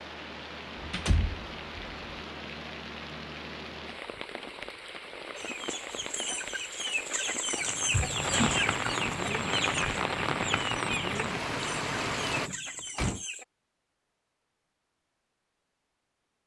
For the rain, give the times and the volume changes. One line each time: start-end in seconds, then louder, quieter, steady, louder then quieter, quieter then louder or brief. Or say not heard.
0.0-12.5 louder.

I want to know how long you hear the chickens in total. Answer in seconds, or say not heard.
8 s.